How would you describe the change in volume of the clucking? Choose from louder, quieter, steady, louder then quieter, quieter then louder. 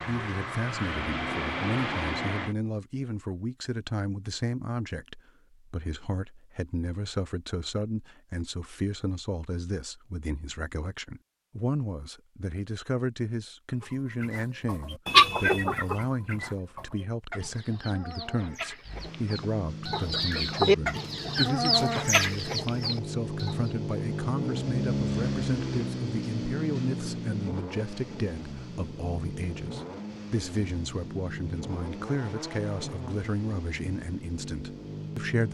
quieter then louder.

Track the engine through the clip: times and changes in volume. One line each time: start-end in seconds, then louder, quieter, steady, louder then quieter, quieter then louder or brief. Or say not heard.
0.0-2.5 brief
18.8-35.4 louder then quieter.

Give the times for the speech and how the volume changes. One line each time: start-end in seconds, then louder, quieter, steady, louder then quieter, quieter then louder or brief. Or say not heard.
0.1-35.4 steady.